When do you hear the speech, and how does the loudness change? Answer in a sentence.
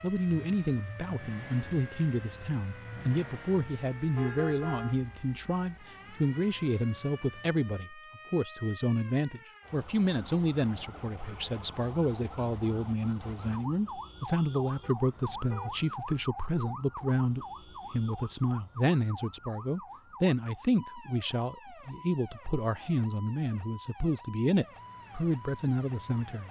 You can hear the speech from 0.0 to 26.4 s, at a steady volume.